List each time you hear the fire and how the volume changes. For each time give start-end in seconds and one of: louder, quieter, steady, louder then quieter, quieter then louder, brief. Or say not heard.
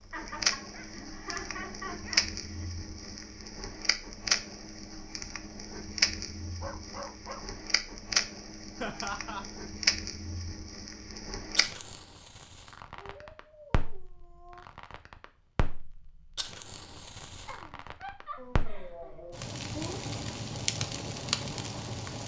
0.1-22.2 quieter then louder.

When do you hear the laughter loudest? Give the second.
9 s.